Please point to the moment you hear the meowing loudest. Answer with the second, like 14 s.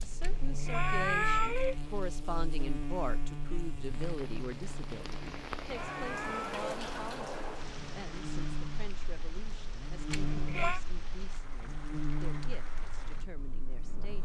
1 s.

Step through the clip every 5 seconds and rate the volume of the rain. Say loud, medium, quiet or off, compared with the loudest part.
medium, loud, medium.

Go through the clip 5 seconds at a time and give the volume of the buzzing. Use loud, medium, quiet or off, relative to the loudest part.
loud, medium, loud.